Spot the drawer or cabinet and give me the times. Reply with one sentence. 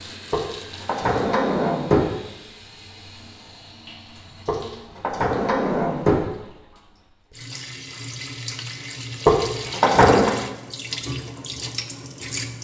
The drawer or cabinet can be heard from 0.3 to 2.1 s, from 4.5 to 6.2 s and from 9.2 to 10.3 s.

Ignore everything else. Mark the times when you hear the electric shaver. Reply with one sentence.
The electric shaver can't be heard in this clip.